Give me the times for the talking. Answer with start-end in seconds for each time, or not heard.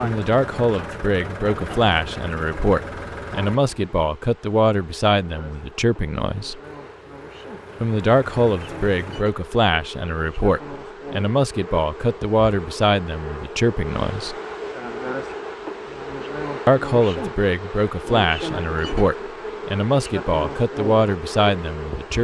0.0-6.6, 7.8-14.3, 16.6-22.1.